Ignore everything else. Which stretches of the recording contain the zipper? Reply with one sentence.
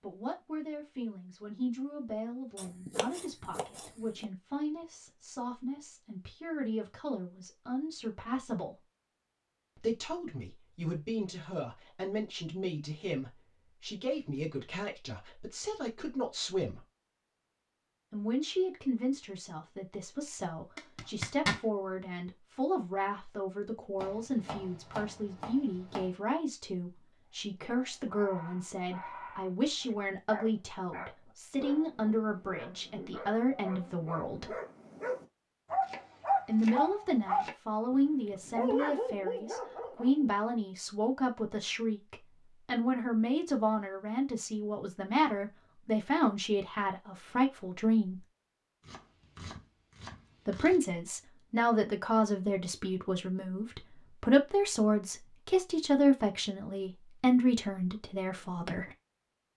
You can hear the zipper from 20.8 to 21.6 s.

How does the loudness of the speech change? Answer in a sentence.
The loudness of the speech goes up.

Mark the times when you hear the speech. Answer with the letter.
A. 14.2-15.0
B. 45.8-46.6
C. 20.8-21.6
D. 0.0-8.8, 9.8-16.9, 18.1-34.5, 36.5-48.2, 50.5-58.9
D.